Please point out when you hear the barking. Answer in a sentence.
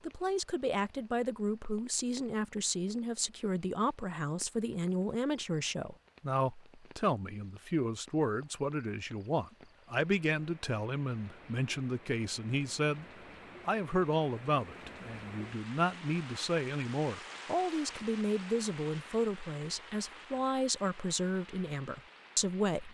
You can't hear the barking here.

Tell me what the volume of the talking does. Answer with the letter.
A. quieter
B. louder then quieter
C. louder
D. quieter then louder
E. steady
E.